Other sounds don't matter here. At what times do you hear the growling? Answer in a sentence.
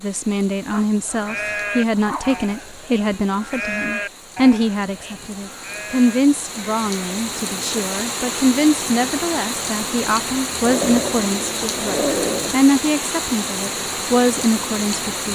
The growling can be heard from 0.7 to 2.5 s and from 10.7 to 12.6 s.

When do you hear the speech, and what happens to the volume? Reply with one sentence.
You can hear the speech from 0.0 to 15.3 s, at a steady volume.